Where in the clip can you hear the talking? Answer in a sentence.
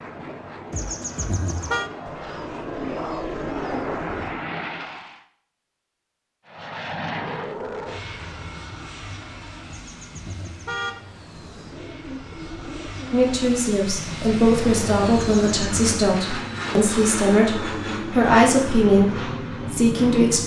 You can hear the talking from 13.1 to 20.4 s.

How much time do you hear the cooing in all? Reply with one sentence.
The cooing can be heard for 4 seconds in total.